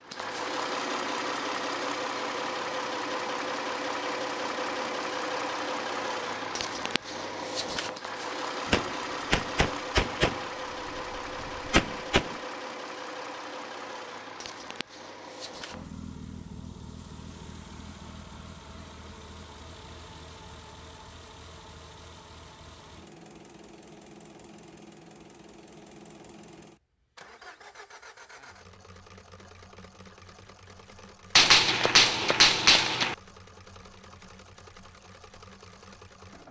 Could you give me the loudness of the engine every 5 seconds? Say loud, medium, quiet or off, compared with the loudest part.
loud, loud, medium, quiet, quiet, quiet, quiet, quiet.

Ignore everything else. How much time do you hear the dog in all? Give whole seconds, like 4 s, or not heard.
not heard.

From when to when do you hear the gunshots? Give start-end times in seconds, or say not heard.
8.7-10.4, 11.4-12.3, 31.4-33.1.